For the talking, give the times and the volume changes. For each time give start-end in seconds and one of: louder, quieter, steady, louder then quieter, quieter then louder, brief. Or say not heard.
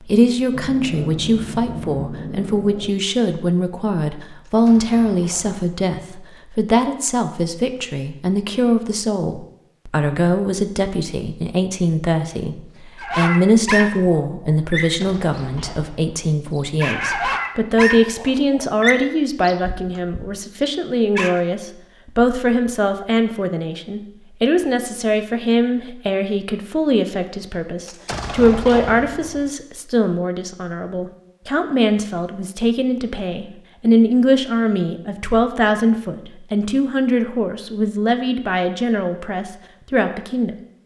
0.0-40.5 steady.